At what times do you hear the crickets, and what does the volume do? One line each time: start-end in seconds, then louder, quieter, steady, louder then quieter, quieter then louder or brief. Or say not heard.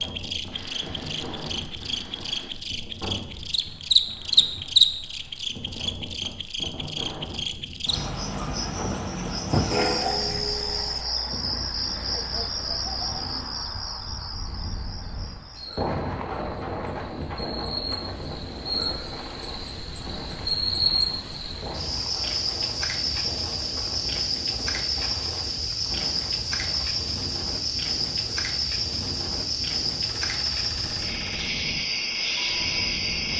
0.0-33.3 quieter then louder.